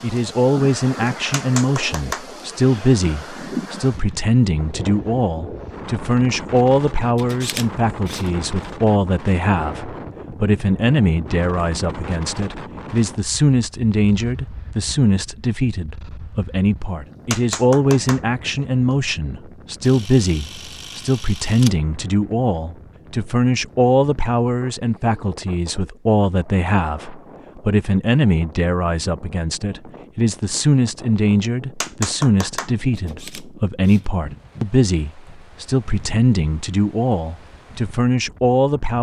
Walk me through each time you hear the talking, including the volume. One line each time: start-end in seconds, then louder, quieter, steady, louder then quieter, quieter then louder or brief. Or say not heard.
0.0-38.9 steady.